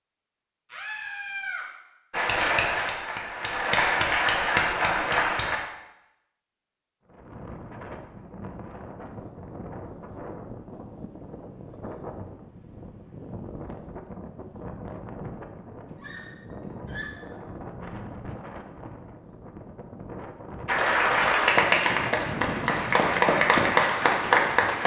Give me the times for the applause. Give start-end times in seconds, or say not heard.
2.1-5.6, 20.6-24.8.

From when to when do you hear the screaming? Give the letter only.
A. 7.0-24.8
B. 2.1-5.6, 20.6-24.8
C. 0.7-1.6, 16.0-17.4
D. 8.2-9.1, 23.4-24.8
C.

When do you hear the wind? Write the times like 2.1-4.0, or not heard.
7.0-24.8.